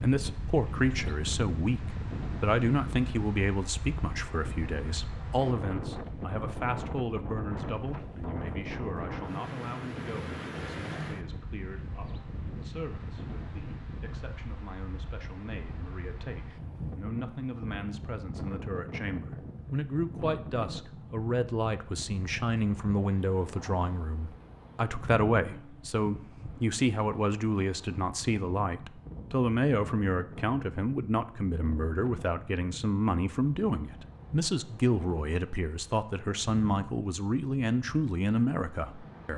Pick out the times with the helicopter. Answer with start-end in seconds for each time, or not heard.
not heard.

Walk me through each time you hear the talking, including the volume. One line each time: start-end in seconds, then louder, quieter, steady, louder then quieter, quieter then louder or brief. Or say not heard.
0.0-39.3 quieter then louder.